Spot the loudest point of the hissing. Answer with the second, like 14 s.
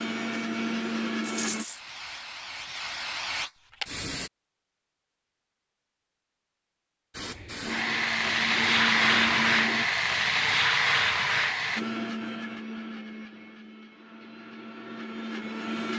9 s.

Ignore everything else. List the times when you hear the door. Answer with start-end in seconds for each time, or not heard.
not heard.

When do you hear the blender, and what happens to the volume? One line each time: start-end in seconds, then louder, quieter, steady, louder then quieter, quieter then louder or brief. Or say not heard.
0.0-1.6 brief
7.6-9.8 brief
11.8-15.9 quieter then louder.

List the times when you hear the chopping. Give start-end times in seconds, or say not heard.
not heard.